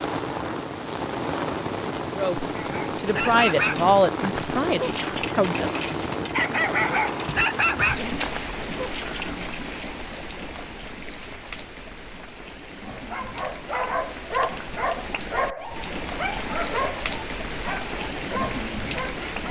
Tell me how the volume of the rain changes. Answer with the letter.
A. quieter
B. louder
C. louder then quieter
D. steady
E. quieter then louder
E.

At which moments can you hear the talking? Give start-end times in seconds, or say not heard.
2.1-5.8.